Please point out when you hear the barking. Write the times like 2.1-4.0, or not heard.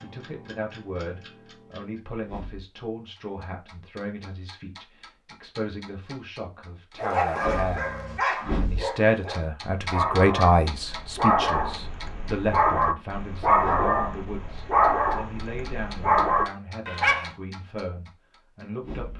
7.0-17.3.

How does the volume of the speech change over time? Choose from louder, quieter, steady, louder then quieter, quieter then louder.
louder then quieter.